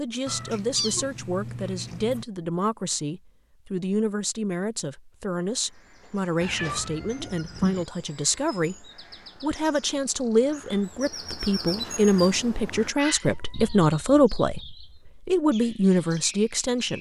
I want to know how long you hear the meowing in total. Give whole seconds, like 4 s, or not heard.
4 s.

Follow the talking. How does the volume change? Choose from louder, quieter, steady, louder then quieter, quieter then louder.
louder.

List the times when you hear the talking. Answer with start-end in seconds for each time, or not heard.
0.0-16.9.